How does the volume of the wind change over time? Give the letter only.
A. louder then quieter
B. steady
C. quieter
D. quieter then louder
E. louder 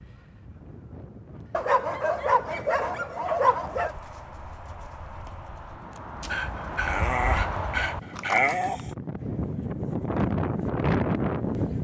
E.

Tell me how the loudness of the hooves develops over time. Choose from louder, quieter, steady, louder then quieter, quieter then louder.
louder.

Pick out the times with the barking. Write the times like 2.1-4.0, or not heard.
1.5-4.0, 6.2-8.9.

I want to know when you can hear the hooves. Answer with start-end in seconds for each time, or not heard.
3.5-8.7.